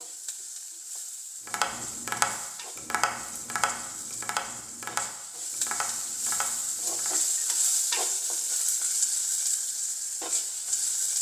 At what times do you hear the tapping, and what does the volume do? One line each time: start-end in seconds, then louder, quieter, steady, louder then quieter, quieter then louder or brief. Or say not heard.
1.4-7.2 quieter.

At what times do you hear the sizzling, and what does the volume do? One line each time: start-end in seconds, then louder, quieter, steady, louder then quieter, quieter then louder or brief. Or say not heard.
0.0-11.1 louder.